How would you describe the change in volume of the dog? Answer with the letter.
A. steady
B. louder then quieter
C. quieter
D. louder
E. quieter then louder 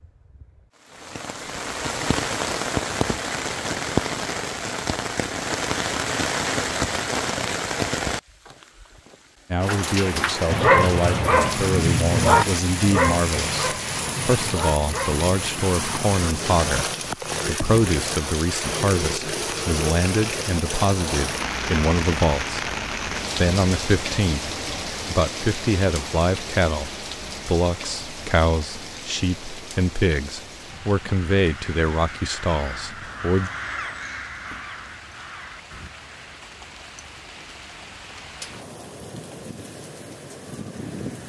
C.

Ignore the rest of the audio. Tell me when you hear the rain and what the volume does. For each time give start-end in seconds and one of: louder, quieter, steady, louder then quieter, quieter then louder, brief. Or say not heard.
0.0-41.2 quieter.